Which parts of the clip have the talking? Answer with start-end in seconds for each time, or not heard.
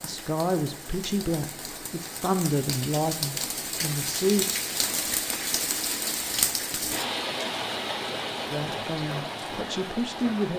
0.0-4.5, 8.5-10.5.